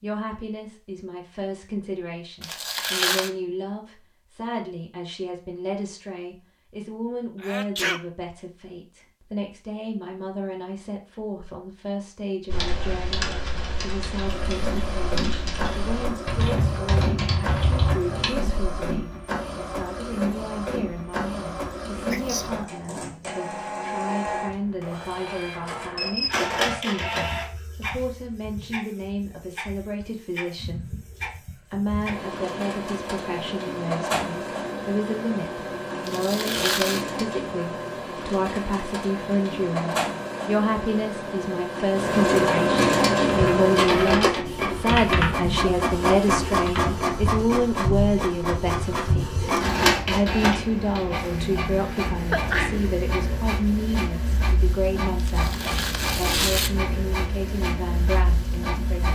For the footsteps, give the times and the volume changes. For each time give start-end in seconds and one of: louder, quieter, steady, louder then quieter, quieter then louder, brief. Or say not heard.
not heard.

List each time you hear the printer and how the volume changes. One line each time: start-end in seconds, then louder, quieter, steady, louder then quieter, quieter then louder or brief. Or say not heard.
14.2-59.1 louder then quieter.